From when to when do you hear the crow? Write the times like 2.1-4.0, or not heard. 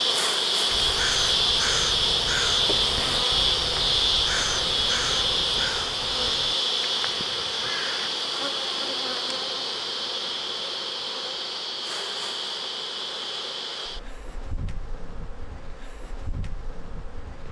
0.7-8.1.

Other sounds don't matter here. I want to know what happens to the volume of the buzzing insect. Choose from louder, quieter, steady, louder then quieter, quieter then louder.
quieter.